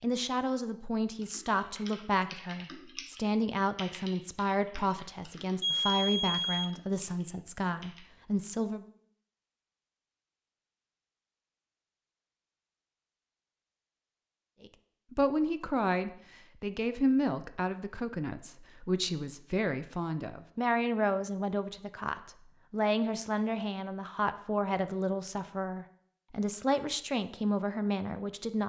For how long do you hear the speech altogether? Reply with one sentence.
The speech can be heard for 23 seconds in total.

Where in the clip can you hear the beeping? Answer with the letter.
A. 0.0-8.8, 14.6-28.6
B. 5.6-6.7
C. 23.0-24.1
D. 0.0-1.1
B.